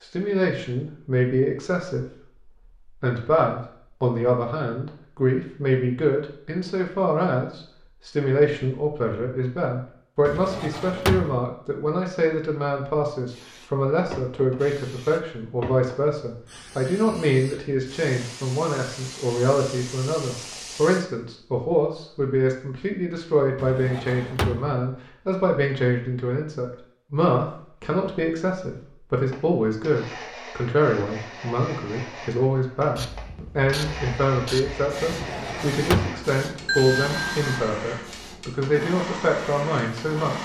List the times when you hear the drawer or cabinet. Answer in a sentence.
The drawer or cabinet can be heard from 10.2 to 11.4 s, from 23.6 to 24.7 s and from 35.1 to 36.2 s.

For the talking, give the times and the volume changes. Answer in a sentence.
The talking can be heard from 0.0 to 40.4 s, at a steady volume.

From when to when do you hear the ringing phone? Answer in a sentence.
The ringing phone can be heard from 36.6 to 37.5 s.